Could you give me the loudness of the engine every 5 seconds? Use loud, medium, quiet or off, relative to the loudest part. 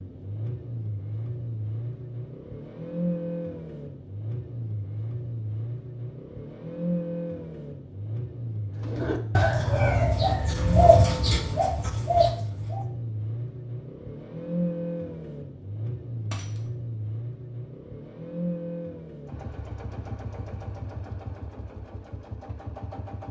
loud, loud, loud, loud, medium.